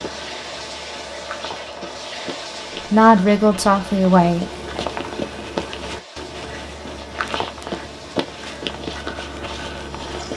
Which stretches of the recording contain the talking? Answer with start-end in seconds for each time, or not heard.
2.9-4.5.